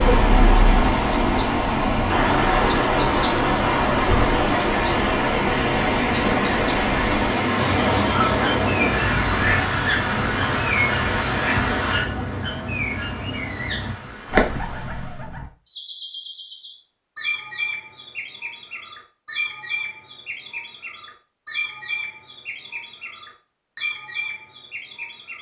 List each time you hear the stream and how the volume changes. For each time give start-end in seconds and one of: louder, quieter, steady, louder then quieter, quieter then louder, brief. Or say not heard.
0.0-15.3 quieter.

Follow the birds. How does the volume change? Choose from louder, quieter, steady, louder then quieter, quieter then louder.
quieter.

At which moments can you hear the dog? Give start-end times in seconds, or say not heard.
not heard.